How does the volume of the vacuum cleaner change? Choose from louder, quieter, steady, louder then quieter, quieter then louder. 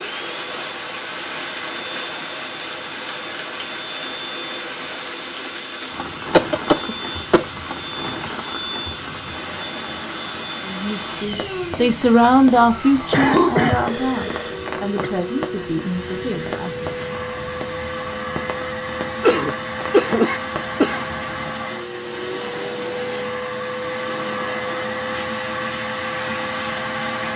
louder.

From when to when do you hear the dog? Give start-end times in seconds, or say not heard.
not heard.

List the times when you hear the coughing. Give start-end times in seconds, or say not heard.
6.3-7.5, 12.6-15.1, 19.2-21.1.